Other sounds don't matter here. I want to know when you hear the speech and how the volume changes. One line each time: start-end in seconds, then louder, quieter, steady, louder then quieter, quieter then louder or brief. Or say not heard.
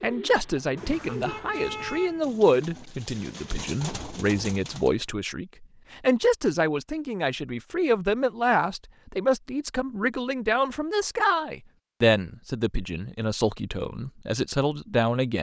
0.0-15.3 steady.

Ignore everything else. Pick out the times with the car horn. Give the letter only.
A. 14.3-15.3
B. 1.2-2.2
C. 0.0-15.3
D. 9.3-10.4
B.